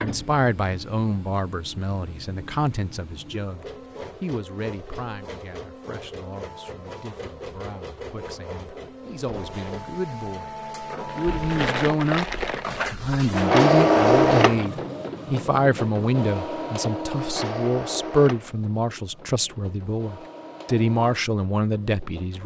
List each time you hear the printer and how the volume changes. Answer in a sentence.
The printer can be heard from 0.0 to 22.4 s, getting louder then quieter.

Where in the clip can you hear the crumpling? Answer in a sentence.
The crumpling can be heard from 11.1 to 12.8 s.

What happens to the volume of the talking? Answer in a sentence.
The loudness of the talking goes down, then up.